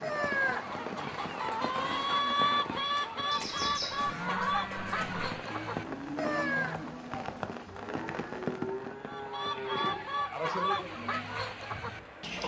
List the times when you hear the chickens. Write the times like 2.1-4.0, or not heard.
0.0-7.0, 9.1-12.4.